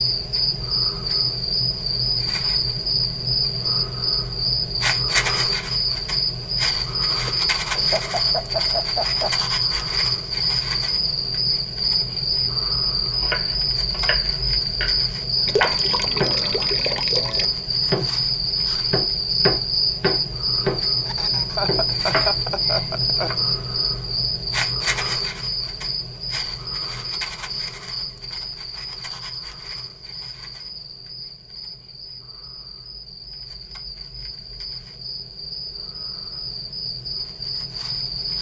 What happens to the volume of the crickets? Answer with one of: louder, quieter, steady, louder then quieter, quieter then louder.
quieter.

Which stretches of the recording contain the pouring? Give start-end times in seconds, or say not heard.
15.4-17.4.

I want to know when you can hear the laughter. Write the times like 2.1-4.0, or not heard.
7.2-9.4, 21.1-23.3.